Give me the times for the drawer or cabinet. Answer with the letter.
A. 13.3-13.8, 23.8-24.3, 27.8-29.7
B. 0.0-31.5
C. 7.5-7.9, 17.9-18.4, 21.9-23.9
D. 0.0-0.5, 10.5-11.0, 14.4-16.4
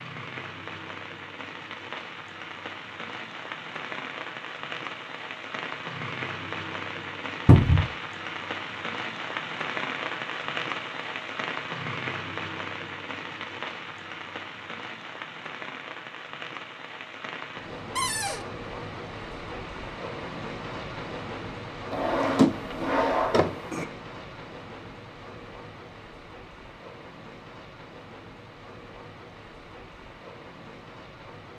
C.